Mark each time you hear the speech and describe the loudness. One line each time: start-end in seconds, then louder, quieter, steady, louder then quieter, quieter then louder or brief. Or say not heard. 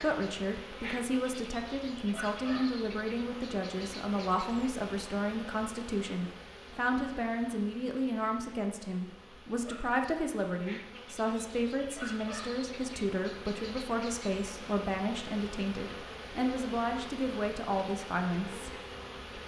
0.0-18.7 steady.